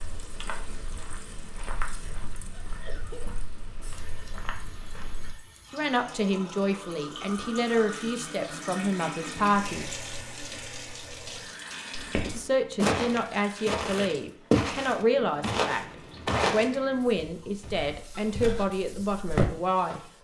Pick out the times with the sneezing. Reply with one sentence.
The sneezing can be heard from 2.5 to 3.3 s.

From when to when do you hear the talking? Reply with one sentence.
The talking can be heard from 5.7 to 9.9 s and from 12.3 to 20.0 s.